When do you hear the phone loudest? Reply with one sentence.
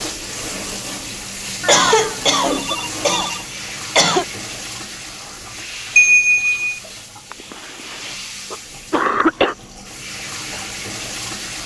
The loudest moment of the phone is at 6 seconds.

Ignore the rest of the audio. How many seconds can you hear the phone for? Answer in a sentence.
The phone can be heard for 3 seconds in total.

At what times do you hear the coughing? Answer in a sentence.
The coughing can be heard from 1.6 to 4.2 s and from 7.3 to 9.6 s.